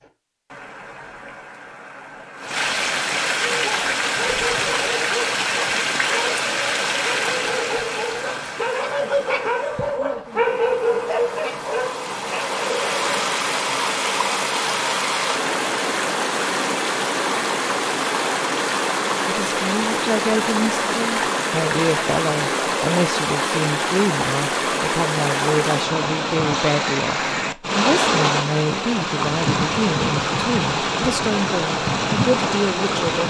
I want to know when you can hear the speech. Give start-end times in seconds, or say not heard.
19.2-33.2.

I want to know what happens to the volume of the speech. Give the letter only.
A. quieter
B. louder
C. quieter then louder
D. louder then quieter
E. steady
E.